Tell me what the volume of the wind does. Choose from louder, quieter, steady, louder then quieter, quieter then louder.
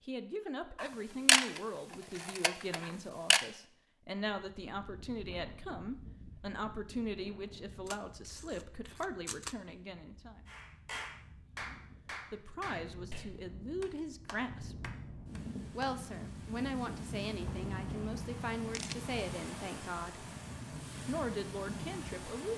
quieter then louder.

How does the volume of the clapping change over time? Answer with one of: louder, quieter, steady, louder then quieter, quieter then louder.
quieter.